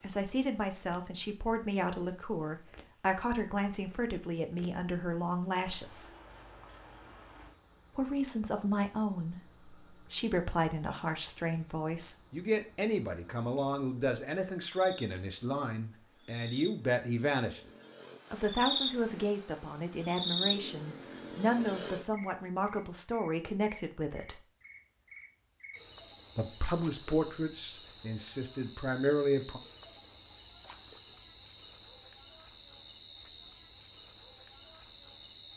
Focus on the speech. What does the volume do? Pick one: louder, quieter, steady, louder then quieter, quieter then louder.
steady.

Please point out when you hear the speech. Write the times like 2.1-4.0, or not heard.
0.0-6.1, 8.0-17.6, 18.3-24.4, 26.4-29.6.